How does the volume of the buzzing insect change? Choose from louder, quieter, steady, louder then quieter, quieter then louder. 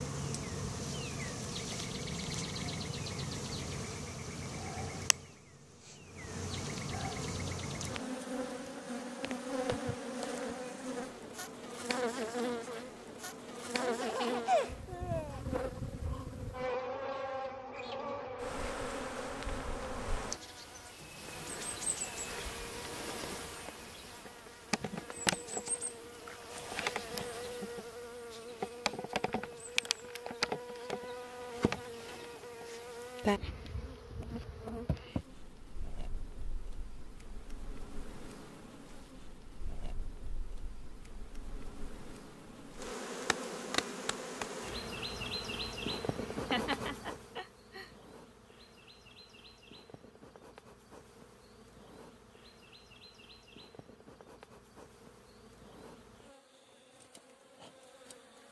quieter.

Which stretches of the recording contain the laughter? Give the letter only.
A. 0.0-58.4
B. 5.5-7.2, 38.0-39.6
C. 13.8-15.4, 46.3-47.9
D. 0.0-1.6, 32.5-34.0
C.